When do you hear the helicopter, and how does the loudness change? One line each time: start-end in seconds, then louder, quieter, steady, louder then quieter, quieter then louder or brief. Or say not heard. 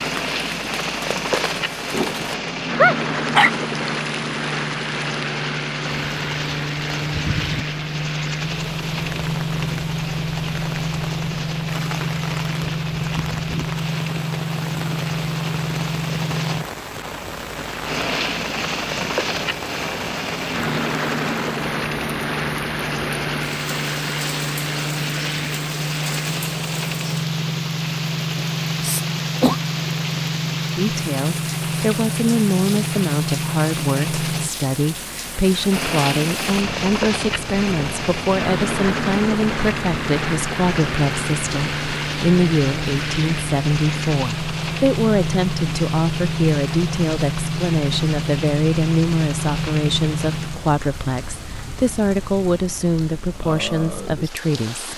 0.0-50.6 steady.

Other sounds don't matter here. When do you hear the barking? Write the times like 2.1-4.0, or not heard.
1.9-3.5.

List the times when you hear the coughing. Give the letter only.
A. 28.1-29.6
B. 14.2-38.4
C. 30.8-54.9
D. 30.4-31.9
A.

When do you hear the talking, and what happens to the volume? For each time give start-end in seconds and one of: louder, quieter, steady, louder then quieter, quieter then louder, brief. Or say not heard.
30.8-54.9 steady.